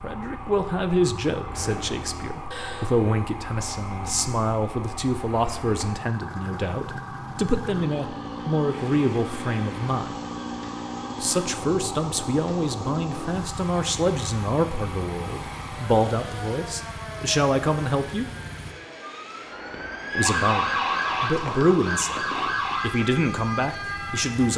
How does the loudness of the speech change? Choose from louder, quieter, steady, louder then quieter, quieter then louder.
steady.